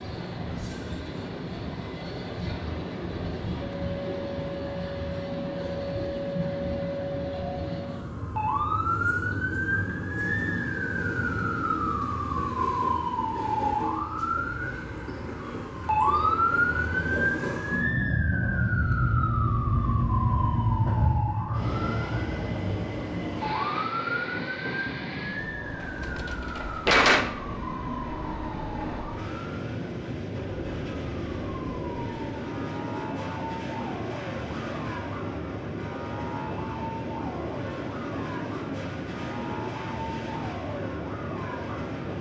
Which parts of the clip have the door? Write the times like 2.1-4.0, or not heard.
25.8-27.4.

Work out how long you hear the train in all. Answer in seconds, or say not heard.
42 s.